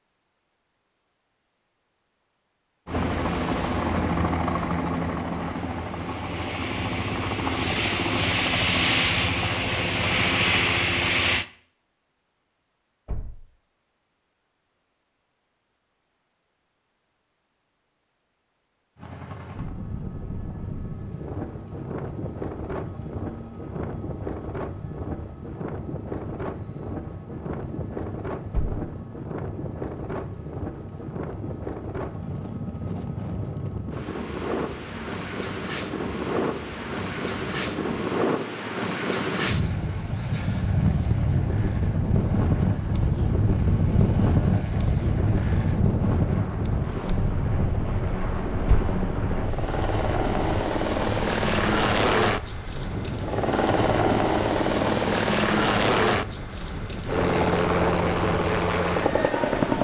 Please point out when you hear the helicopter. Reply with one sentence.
The helicopter can be heard from 2.9 to 11.4 s and from 18.9 to 59.7 s.